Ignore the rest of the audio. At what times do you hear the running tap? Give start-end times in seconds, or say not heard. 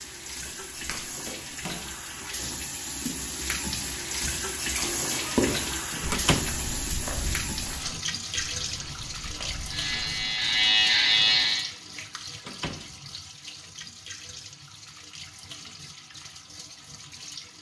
0.0-17.5.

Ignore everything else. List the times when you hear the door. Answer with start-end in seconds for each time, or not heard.
6.1-6.5, 12.4-12.8.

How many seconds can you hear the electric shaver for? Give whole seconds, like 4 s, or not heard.
2 s.